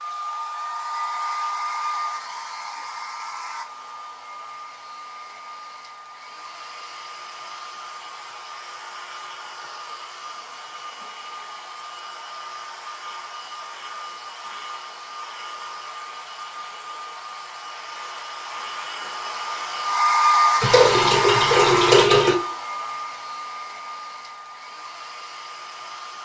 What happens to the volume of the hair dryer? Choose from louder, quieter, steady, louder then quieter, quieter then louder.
quieter then louder.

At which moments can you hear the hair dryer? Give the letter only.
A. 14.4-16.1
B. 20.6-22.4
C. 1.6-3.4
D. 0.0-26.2
D.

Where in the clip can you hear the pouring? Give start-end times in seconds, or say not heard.
20.6-22.4.